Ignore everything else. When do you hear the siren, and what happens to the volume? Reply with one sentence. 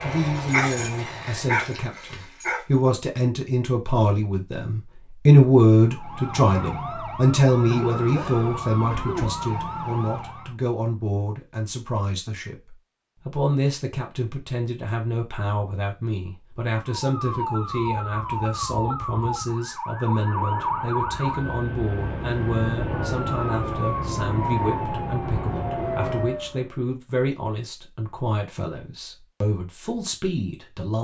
The siren can be heard from 5.8 to 10.6 s, at a steady volume; and from 16.8 to 26.8 s, at a steady volume.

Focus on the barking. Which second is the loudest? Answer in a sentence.
The volume of the barking peaks at 1 second.